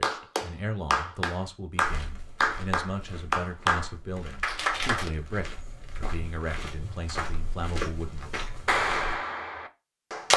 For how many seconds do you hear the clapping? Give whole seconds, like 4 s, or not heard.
7 s.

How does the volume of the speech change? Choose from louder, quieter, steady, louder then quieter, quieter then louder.
steady.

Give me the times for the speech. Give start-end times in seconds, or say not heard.
0.0-8.3.